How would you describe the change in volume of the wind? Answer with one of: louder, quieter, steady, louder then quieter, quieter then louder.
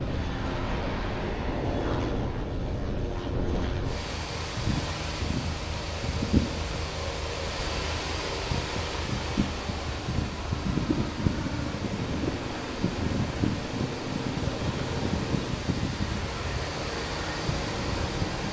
steady.